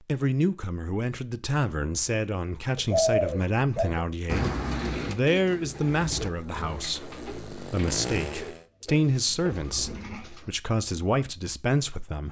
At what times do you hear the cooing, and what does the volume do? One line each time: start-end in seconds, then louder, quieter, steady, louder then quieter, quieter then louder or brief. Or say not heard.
2.8-10.6 quieter.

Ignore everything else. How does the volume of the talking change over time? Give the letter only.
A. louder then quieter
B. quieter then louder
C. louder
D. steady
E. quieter
D.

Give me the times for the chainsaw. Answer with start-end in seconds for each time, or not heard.
6.2-8.7.